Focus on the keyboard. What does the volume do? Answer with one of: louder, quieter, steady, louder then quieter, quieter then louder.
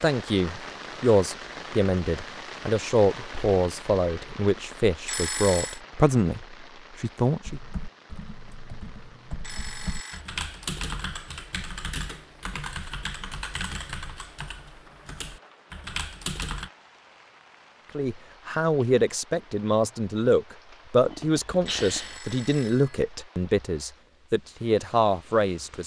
louder.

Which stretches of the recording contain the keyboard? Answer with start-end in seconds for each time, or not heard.
7.4-16.7.